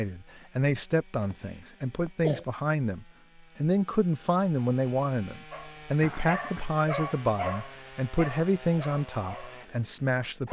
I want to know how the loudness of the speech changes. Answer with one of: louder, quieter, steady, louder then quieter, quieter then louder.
steady.